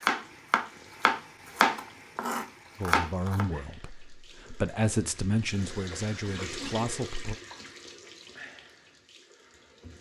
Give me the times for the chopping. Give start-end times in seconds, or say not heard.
0.0-3.5.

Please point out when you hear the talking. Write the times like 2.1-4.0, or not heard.
2.8-7.3.